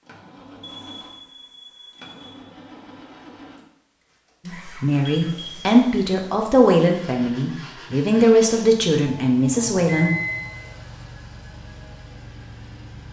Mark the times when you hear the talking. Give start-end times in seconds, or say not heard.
4.5-10.1.